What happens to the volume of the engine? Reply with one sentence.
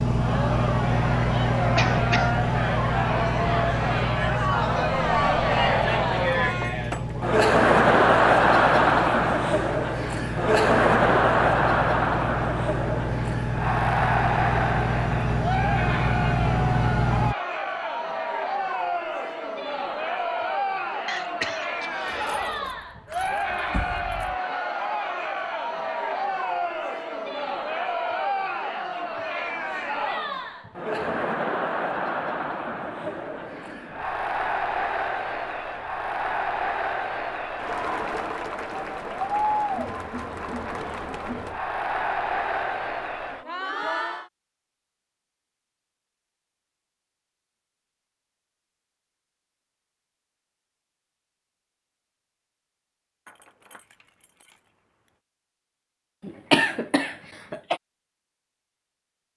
The volume of the engine goes down, then up.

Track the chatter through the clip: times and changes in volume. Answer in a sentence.
You can hear the chatter from 0.0 to 44.3 s, getting quieter.